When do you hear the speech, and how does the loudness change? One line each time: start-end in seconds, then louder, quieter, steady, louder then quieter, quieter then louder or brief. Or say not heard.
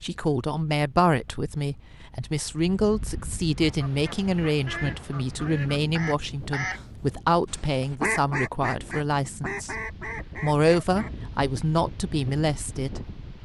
0.0-9.8 steady
10.4-13.0 brief.